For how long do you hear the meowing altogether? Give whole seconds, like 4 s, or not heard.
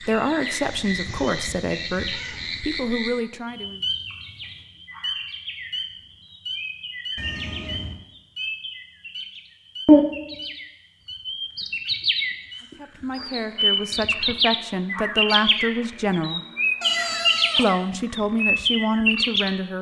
4 s.